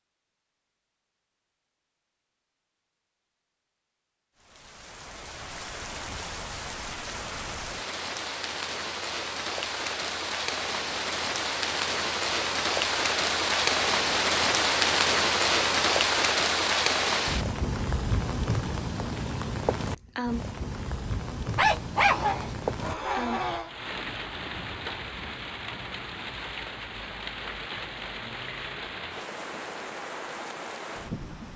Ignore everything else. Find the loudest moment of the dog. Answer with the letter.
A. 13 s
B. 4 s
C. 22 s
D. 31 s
C.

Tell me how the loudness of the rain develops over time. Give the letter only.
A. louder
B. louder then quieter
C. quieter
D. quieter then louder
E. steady
B.